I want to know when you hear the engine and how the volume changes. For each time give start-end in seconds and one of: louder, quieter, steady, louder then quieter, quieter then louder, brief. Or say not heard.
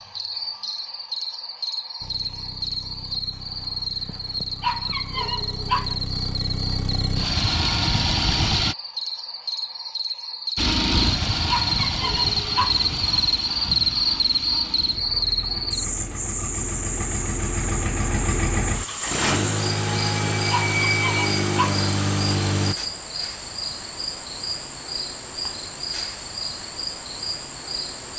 2.0-8.8 louder
10.6-22.8 quieter then louder.